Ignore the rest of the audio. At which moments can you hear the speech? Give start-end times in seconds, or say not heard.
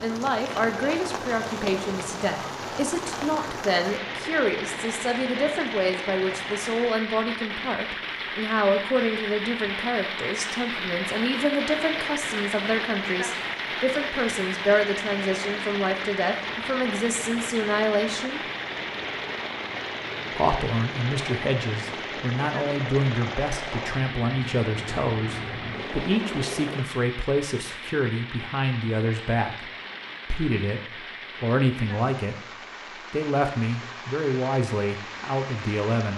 0.0-18.4, 20.3-29.7, 30.3-32.4, 33.1-36.1.